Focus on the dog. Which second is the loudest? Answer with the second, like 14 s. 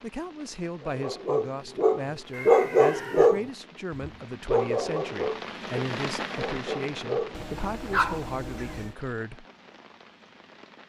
3 s.